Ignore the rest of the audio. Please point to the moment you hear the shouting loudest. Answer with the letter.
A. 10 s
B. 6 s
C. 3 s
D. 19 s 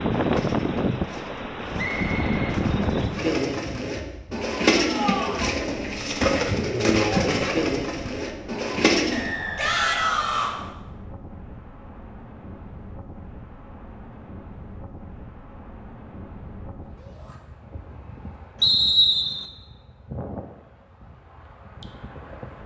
A.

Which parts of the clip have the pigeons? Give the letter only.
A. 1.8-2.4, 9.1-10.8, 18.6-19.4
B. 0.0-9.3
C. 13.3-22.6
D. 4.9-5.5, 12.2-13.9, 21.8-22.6
B.